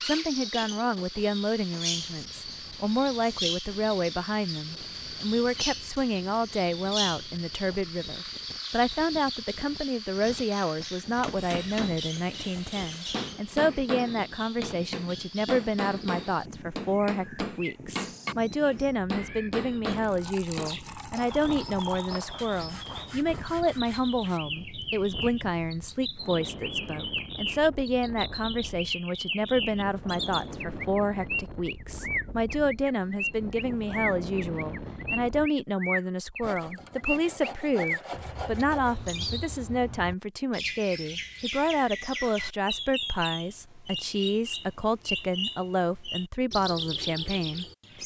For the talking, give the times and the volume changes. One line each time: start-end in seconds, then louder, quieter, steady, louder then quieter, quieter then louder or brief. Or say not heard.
0.0-47.6 steady.